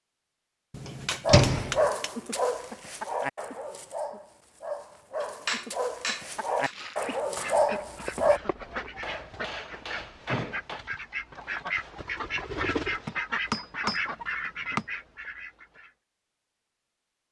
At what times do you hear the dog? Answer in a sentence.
The dog can be heard from 1.2 to 8.4 s.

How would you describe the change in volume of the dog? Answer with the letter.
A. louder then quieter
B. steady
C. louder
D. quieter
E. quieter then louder
E.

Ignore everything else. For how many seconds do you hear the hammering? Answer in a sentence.
The hammering can be heard for 7 seconds in total.